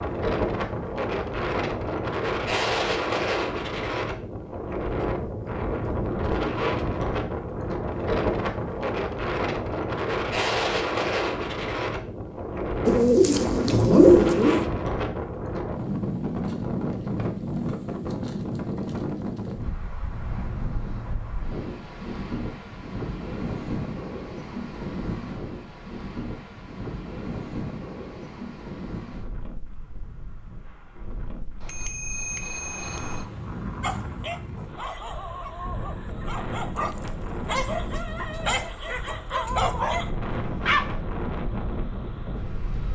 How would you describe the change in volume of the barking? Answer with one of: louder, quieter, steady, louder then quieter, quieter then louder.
louder.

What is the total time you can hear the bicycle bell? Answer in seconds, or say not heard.
2 s.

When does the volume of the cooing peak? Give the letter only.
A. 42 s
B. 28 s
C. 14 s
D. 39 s
C.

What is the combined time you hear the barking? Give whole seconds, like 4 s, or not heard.
7 s.